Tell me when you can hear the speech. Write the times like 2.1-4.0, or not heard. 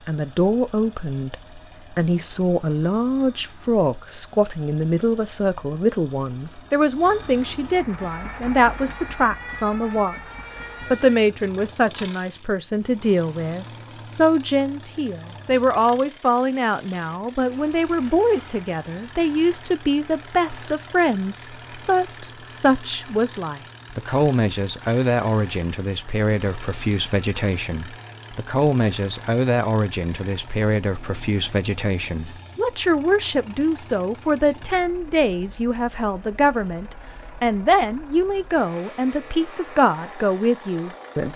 0.1-41.3.